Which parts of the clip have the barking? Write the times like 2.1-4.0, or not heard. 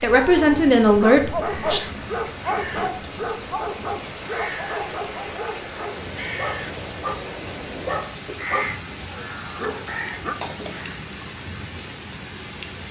0.4-10.3.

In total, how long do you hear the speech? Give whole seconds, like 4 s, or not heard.
2 s.